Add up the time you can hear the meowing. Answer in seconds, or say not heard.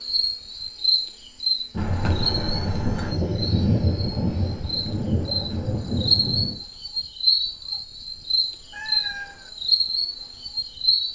2 s.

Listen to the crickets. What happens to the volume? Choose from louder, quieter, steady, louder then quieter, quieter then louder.
quieter then louder.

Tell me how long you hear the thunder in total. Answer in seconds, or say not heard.
5 s.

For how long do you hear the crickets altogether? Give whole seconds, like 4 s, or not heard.
11 s.